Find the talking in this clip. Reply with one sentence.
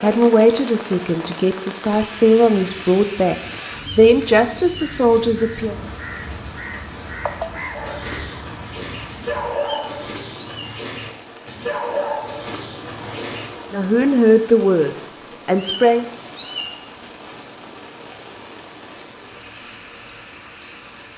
The talking can be heard from 0.0 to 3.4 s, from 4.0 to 5.8 s and from 13.7 to 16.1 s.